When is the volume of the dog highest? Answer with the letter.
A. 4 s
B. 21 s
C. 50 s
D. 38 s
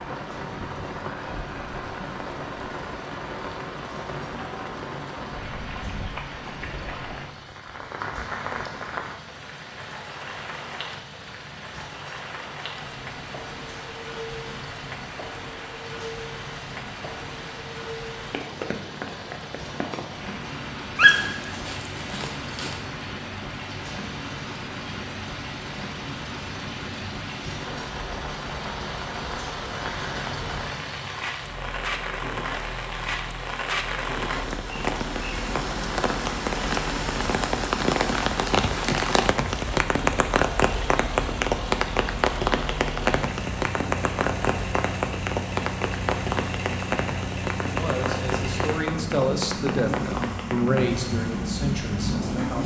B.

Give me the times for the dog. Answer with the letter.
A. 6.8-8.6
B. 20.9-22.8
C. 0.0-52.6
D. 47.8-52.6
B.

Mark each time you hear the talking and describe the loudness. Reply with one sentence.
The talking can be heard from 47.8 to 52.6 s, getting louder then quieter.